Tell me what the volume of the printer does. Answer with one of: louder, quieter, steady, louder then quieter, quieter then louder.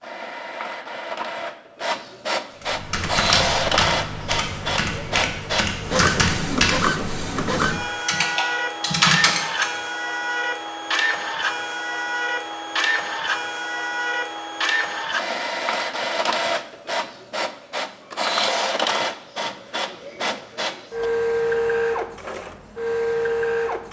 steady.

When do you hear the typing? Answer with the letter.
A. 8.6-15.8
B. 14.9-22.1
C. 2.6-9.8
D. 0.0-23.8
C.